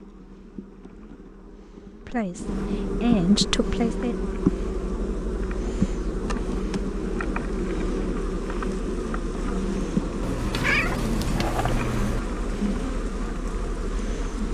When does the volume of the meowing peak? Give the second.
11 s.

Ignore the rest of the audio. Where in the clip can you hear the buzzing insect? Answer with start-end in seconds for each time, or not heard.
0.0-14.4.